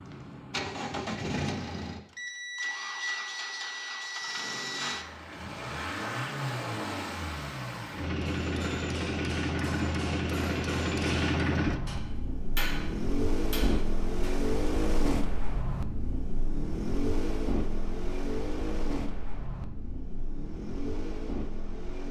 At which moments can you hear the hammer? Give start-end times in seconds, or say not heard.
8.2-14.4.